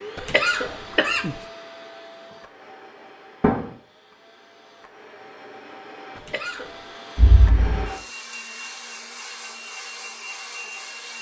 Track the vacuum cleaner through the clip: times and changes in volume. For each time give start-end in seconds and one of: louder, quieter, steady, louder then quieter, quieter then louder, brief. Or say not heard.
0.0-11.1 quieter then louder.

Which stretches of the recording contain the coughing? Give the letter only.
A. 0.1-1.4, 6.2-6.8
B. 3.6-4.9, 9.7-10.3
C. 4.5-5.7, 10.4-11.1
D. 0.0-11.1
A.